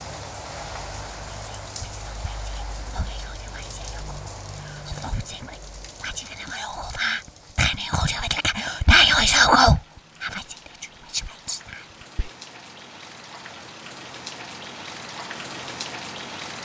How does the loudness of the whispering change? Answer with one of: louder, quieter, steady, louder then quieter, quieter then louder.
louder then quieter.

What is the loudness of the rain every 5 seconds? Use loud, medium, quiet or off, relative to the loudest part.
loud, medium, medium, loud.